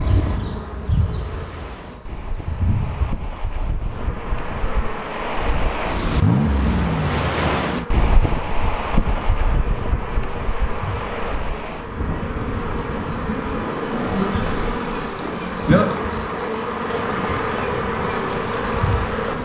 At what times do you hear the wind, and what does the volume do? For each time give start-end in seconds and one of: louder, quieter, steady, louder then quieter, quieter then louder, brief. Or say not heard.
0.2-19.4 louder then quieter.